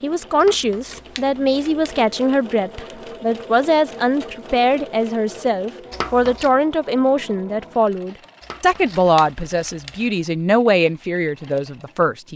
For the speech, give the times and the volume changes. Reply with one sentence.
You can hear the speech from 0.0 to 12.3 s, at a steady volume.